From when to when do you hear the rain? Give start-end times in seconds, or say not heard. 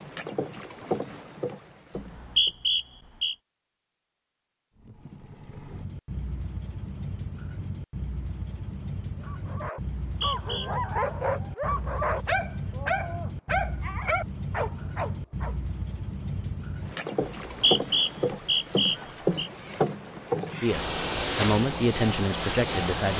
not heard.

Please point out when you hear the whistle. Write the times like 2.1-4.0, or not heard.
1.9-3.4, 10.1-10.7, 17.4-19.5.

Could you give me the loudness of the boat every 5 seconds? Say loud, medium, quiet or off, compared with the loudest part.
medium, medium, medium, loud, loud.